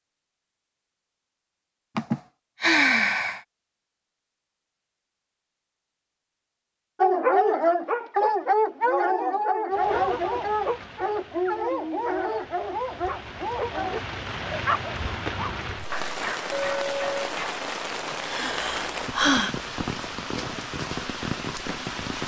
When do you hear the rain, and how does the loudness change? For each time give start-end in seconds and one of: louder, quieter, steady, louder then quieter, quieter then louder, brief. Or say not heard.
9.7-22.2 louder.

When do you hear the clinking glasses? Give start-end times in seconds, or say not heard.
16.5-17.2.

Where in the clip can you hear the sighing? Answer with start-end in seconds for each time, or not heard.
1.9-3.4, 18.2-19.6.